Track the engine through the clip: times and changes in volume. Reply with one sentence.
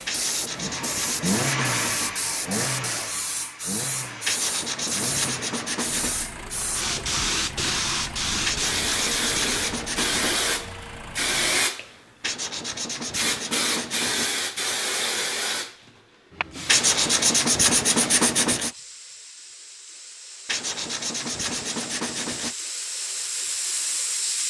You can hear the engine from 0.0 to 11.7 s, getting quieter.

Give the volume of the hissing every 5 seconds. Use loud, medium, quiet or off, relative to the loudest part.
medium, loud, loud, medium, medium.